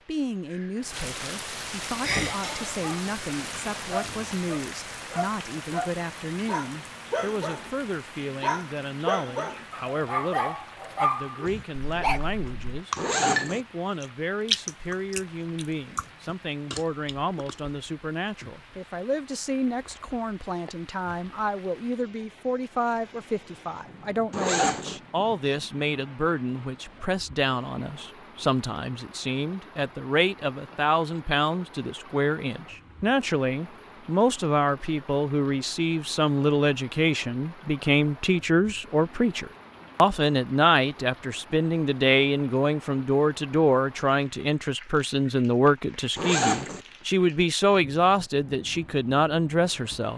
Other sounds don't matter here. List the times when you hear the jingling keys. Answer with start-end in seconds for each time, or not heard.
not heard.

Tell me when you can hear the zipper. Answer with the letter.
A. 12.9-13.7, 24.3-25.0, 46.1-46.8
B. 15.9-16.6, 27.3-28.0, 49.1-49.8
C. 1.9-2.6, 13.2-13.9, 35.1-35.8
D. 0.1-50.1
A.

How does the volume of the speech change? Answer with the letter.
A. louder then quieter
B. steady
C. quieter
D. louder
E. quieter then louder
D.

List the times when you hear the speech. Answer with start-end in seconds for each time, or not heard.
0.1-50.1.